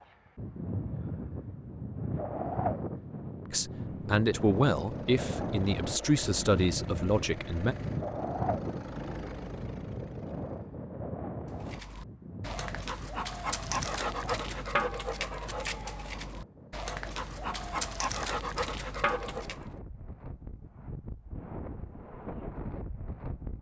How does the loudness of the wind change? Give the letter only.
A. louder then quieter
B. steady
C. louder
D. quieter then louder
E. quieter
E.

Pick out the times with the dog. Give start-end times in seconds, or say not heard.
11.6-19.8.